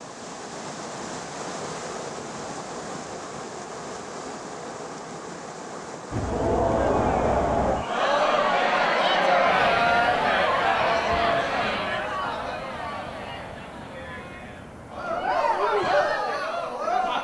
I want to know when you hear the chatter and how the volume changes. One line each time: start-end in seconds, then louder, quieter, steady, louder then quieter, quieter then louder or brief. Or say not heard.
6.1-17.1 quieter then louder.